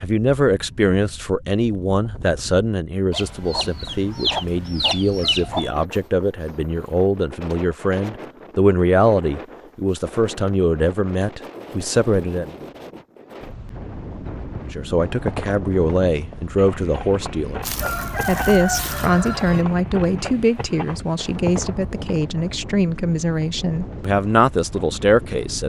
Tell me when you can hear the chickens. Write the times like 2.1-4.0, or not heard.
3.1-5.7, 17.6-19.6.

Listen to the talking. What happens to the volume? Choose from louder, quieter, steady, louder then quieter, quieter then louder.
steady.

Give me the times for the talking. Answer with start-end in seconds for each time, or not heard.
0.0-12.6, 14.7-25.6.